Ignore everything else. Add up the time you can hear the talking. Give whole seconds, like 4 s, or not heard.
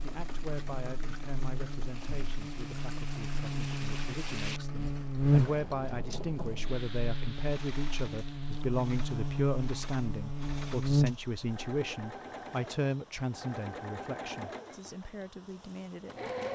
16 s.